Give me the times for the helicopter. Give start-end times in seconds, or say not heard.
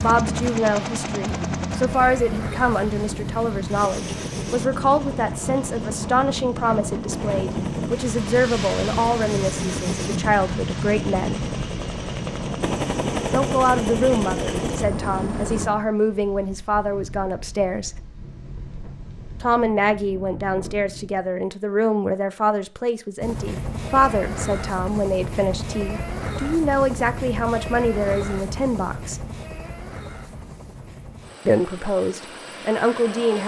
0.0-15.7, 23.2-33.4.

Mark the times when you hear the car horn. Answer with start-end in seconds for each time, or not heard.
not heard.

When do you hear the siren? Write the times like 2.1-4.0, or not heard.
not heard.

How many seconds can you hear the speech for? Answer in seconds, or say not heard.
28 s.